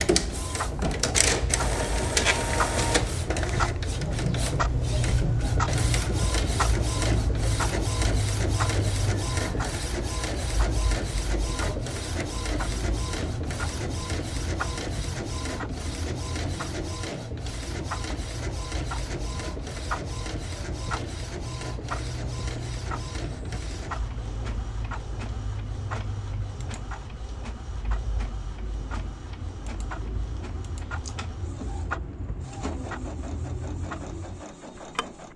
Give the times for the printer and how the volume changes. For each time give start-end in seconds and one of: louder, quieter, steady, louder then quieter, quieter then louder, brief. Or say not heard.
0.0-35.3 quieter.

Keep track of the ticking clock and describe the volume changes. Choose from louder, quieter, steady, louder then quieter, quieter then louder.
quieter.